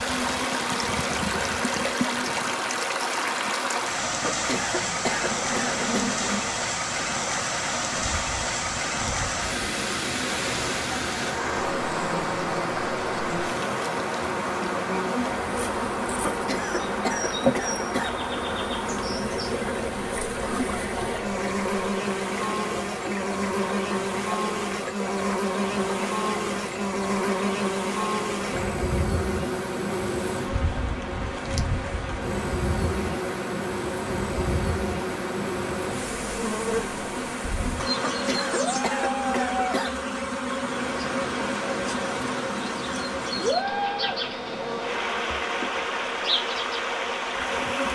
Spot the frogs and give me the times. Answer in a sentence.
You can't hear the frogs here.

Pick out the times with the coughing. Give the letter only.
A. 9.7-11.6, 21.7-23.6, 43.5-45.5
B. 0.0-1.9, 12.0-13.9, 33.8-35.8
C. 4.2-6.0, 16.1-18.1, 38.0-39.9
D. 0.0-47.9
C.